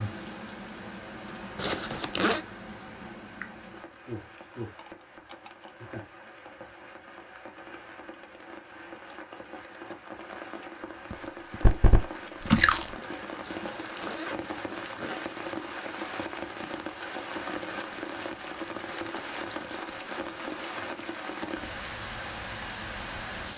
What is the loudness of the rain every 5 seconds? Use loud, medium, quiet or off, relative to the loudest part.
medium, medium, loud, loud, loud.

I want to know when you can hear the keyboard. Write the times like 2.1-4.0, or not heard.
not heard.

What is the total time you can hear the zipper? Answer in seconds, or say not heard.
3 s.